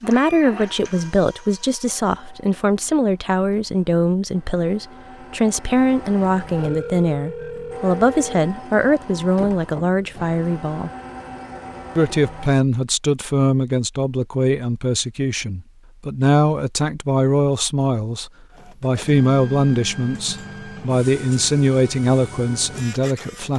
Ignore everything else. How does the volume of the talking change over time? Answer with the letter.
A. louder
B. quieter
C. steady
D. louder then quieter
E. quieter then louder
C.